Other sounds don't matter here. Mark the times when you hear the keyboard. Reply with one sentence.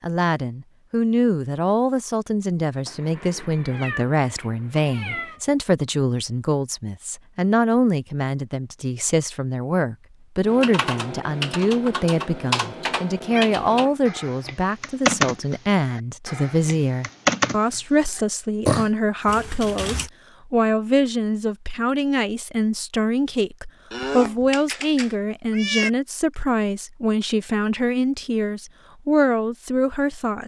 The keyboard can be heard from 10.4 to 20.1 s.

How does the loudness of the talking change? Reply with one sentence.
The volume of the talking stays about the same.